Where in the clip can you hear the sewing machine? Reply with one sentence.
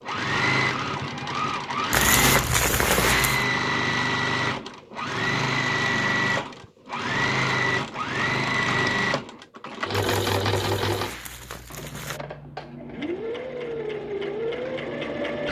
You can hear the sewing machine from 0.0 to 15.4 s.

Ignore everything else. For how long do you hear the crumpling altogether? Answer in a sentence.
The crumpling can be heard for 4 seconds in total.